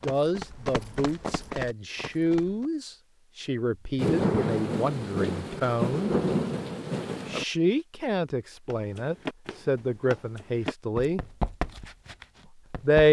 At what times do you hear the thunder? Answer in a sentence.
The thunder can be heard from 4.0 to 7.5 s.